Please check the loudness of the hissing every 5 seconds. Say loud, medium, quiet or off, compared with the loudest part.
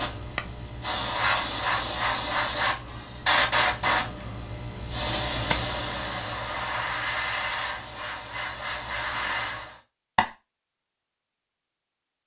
loud, loud, off.